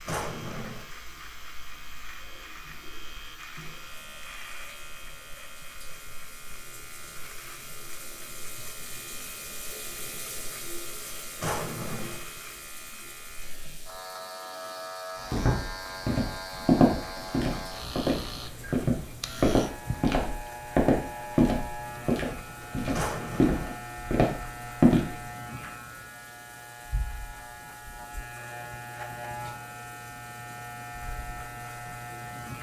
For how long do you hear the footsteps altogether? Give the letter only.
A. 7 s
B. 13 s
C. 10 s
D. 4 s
C.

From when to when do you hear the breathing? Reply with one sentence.
You can't hear the breathing here.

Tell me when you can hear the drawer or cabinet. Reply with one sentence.
The drawer or cabinet can be heard from 0.1 to 0.8 s, from 11.4 to 12.2 s and from 22.9 to 23.8 s.